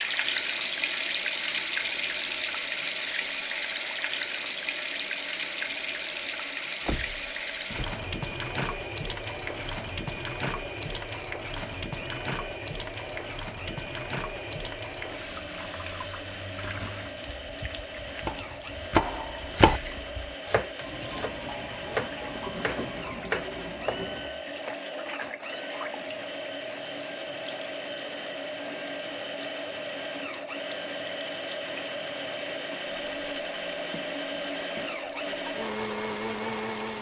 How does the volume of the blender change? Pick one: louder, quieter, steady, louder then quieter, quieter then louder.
louder.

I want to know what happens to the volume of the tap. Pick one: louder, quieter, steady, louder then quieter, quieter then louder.
quieter.